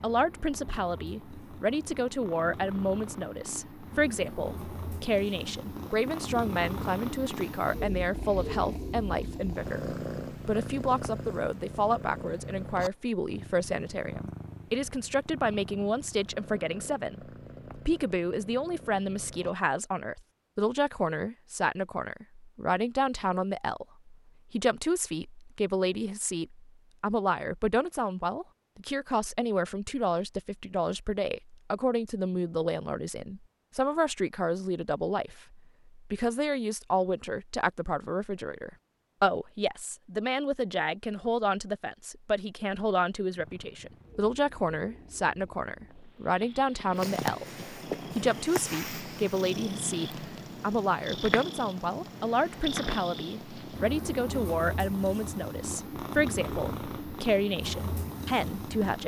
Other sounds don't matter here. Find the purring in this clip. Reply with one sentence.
The purring can be heard from 0.0 to 19.6 s and from 43.4 to 59.0 s.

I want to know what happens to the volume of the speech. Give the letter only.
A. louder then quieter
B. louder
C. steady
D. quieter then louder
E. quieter
C.